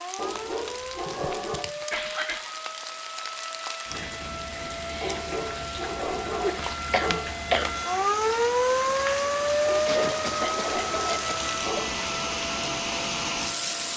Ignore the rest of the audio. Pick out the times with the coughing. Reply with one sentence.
You can hear the coughing from 0.9 to 2.6 s, from 6.4 to 7.7 s and from 9.8 to 11.8 s.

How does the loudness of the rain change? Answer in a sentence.
The loudness of the rain goes up.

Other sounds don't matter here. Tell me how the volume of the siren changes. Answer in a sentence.
The loudness of the siren goes up, then down.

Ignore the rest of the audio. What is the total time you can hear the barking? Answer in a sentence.
You can hear the barking for 6 seconds altogether.